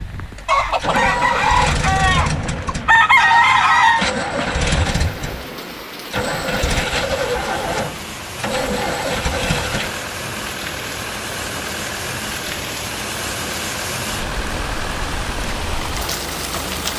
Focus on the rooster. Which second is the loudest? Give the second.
3 s.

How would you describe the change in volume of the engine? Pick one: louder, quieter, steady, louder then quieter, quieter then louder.
quieter.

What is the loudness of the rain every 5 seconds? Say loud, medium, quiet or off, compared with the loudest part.
medium, medium, loud, loud.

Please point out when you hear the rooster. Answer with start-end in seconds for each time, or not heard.
0.5-4.0.